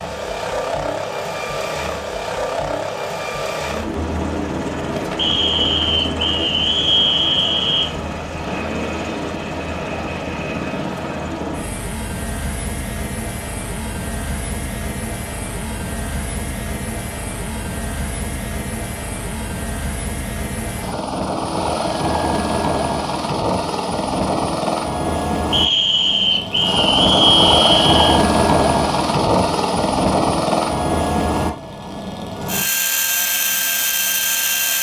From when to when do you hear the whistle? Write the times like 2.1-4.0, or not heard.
5.2-7.9, 25.5-28.2.